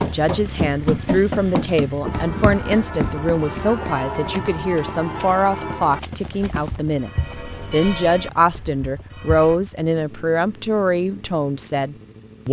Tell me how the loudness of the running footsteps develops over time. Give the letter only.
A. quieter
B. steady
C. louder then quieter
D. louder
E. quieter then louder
A.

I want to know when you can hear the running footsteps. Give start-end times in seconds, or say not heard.
0.0-6.8.